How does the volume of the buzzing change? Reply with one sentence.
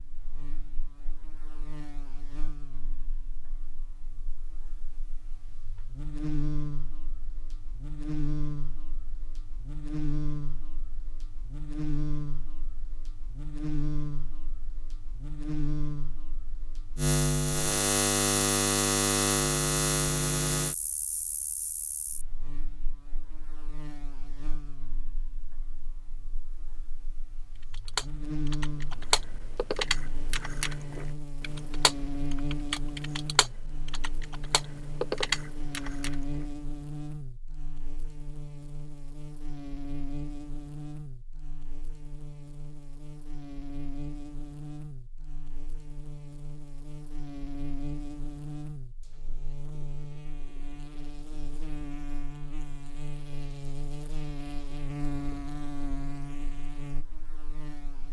The volume of the buzzing goes up, then down.